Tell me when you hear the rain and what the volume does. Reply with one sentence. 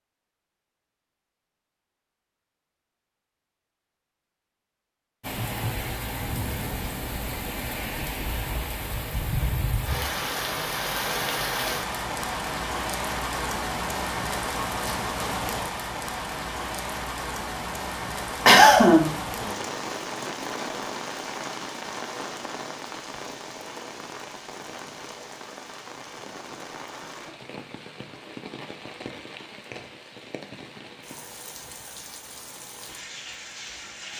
The rain can be heard from 5.2 to 34.1 s, getting quieter.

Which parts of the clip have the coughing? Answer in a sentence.
You can hear the coughing from 18.4 to 19.1 s.